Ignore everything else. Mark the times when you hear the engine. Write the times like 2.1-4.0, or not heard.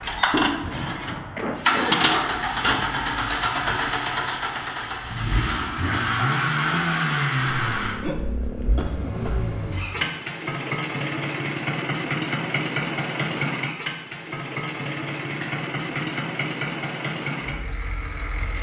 0.0-18.5.